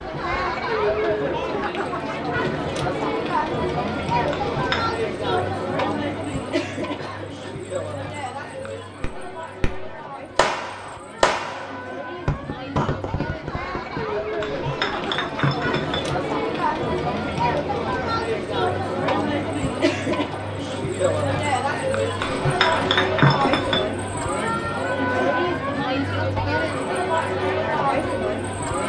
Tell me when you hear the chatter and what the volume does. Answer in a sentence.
You can hear the chatter from 0.0 to 28.8 s, getting quieter then louder.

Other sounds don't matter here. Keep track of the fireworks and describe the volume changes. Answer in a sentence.
The loudness of the fireworks goes up, then down.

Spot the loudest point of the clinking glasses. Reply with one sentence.
The loudest moment of the clinking glasses is at 23 seconds.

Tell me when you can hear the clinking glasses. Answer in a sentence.
The clinking glasses can be heard from 4.3 to 5.0 s, from 14.4 to 16.1 s and from 22.1 to 23.9 s.